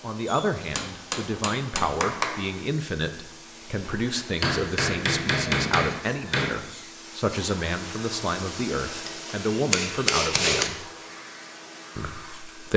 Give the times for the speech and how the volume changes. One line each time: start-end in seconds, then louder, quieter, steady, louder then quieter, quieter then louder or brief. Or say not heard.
0.0-10.8 steady
11.9-12.7 brief.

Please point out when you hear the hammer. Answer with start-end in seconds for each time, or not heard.
0.8-2.5, 4.4-6.6, 9.1-10.7.